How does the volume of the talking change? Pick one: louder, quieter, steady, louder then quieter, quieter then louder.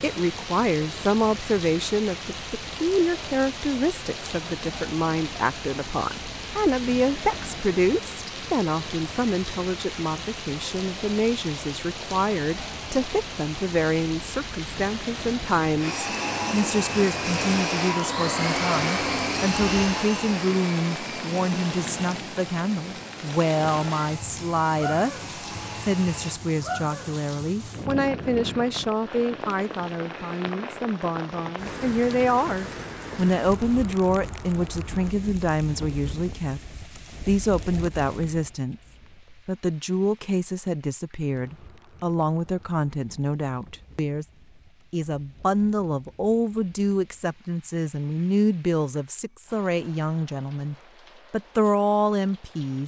steady.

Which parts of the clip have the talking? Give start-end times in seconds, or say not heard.
0.0-25.1, 25.8-36.6, 37.2-44.2, 44.9-52.8.